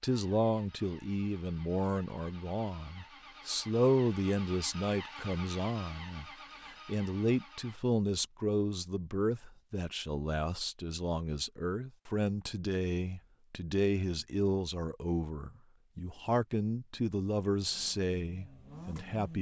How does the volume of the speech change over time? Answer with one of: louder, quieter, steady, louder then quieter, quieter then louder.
steady.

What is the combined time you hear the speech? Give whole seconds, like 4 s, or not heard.
19 s.